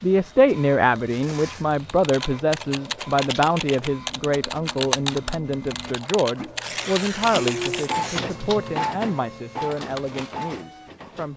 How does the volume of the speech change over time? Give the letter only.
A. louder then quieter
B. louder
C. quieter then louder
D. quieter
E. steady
D.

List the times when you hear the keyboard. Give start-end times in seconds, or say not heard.
1.8-8.8.